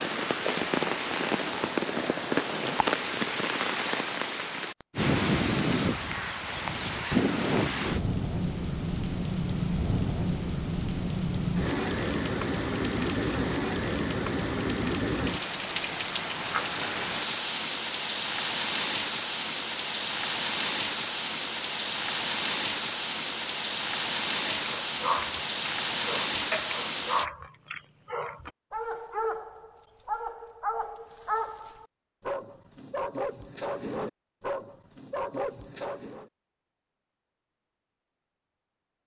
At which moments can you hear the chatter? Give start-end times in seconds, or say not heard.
not heard.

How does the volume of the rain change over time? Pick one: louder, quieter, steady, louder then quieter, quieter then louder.
steady.